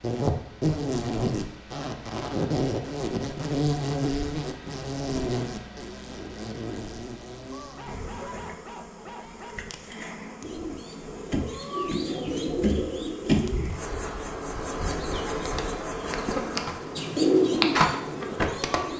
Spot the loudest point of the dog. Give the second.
8 s.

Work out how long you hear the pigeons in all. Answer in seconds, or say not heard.
5 s.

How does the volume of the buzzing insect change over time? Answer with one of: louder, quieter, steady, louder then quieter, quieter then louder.
quieter then louder.